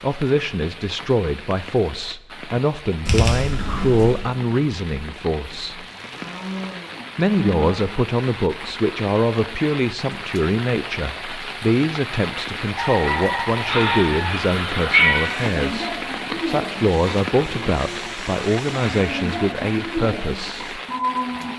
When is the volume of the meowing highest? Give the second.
15 s.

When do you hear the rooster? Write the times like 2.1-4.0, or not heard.
12.8-14.3.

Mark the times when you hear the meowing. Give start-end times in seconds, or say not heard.
3.0-4.2, 13.7-15.3.